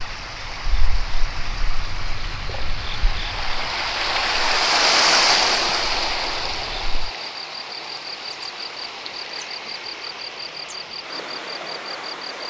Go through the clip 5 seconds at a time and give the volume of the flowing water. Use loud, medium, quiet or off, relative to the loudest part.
loud, loud, medium.